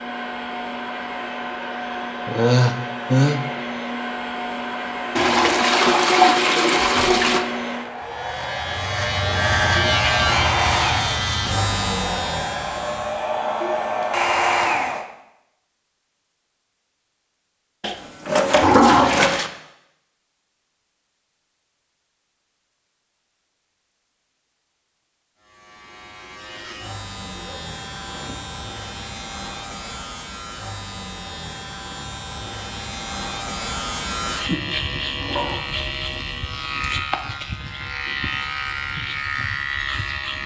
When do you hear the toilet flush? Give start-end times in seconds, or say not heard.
5.2-7.5, 17.8-19.5, 34.9-35.5.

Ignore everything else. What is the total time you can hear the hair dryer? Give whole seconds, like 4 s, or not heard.
15 s.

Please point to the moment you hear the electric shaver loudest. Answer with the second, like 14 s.
10 s.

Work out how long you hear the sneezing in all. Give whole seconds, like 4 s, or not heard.
2 s.